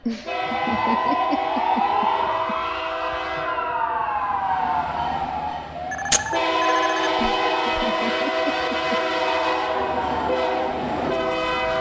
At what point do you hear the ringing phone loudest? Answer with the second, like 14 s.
6 s.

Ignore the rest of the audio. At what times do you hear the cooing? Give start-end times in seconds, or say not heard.
not heard.